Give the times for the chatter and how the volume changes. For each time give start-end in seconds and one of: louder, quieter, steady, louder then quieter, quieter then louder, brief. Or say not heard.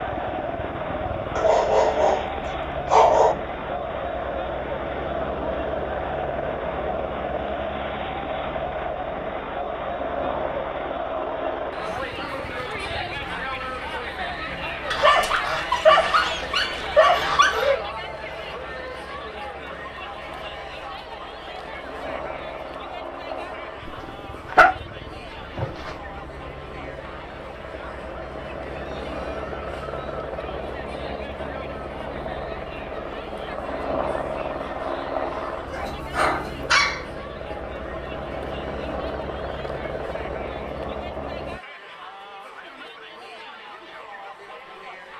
0.0-45.1 quieter.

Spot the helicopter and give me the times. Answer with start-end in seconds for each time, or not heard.
0.0-41.6.